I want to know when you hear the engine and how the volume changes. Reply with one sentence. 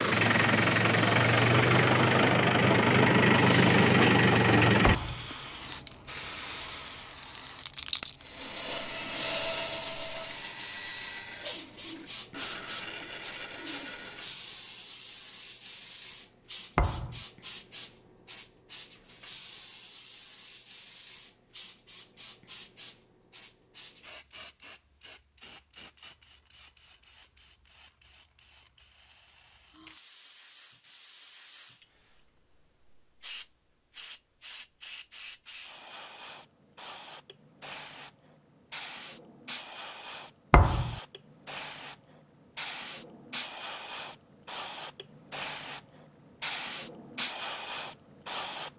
The engine can be heard from 0.0 to 5.0 s, at a steady volume.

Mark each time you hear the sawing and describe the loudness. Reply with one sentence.
The sawing can be heard from 8.2 to 14.4 s, getting quieter.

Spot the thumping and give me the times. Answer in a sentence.
You can hear the thumping from 4.8 to 5.3 s, from 16.8 to 17.2 s and from 40.5 to 41.0 s.